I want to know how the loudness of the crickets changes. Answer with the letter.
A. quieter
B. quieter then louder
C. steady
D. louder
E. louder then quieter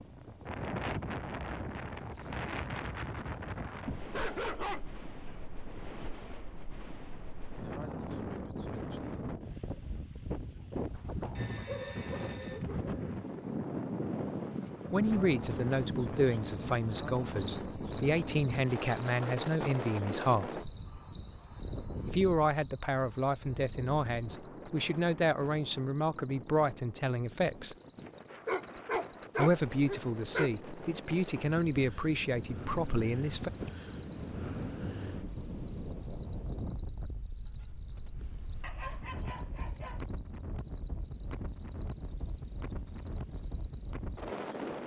D.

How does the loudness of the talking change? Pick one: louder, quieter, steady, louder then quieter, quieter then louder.
steady.